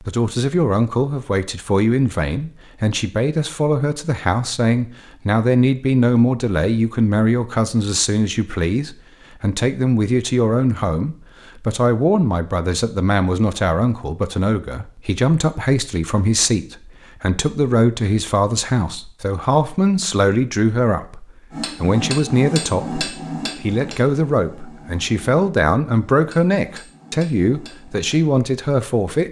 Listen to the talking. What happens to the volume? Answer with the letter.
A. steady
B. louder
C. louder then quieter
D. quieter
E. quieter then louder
A.